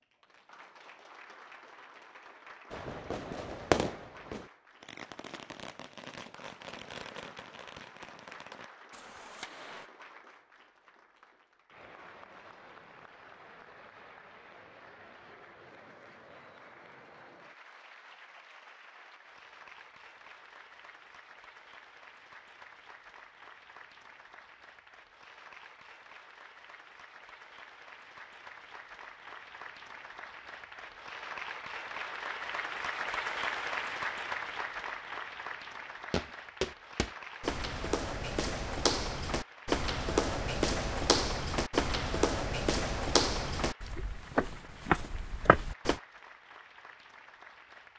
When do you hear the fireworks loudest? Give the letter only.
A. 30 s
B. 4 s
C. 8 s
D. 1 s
B.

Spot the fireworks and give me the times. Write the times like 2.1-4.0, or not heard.
2.7-9.9.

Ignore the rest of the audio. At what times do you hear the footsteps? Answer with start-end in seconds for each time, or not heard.
36.1-46.0.